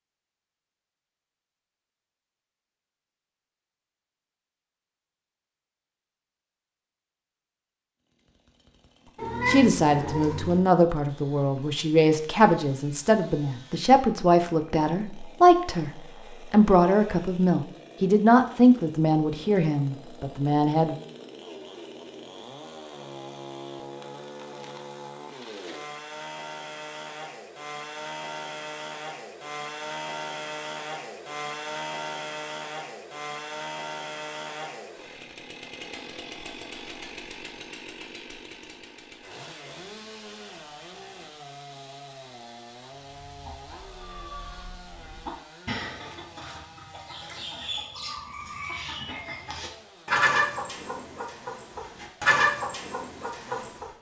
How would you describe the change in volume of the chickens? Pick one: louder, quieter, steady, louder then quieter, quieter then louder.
louder.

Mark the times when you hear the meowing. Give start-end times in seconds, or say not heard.
9.2-10.6.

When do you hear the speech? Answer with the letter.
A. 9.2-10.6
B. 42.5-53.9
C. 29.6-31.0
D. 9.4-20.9
D.